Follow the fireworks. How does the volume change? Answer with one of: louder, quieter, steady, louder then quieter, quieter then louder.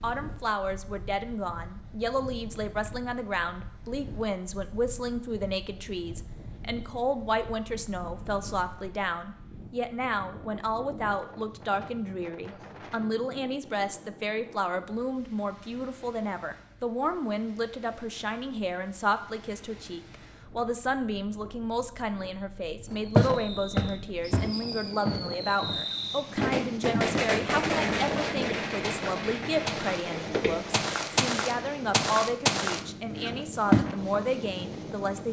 louder then quieter.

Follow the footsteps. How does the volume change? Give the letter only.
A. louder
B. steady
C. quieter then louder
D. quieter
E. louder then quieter
C.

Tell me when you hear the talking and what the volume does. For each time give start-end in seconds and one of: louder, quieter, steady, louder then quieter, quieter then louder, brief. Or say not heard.
0.0-35.2 steady.